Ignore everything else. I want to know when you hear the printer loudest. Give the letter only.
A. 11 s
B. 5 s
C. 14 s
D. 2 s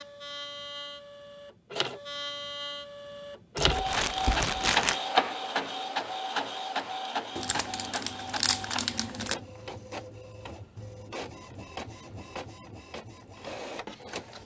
B.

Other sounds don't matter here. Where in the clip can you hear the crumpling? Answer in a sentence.
You can hear the crumpling from 3.5 to 5.0 s and from 7.3 to 9.3 s.